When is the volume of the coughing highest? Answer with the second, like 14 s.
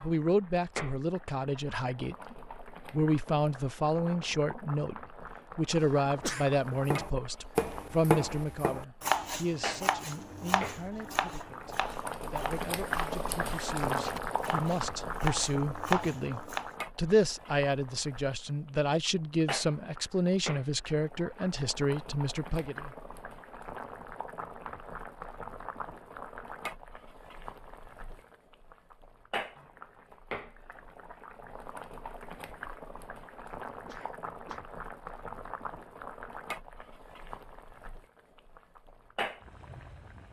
6 s.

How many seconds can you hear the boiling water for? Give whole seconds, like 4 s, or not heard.
40 s.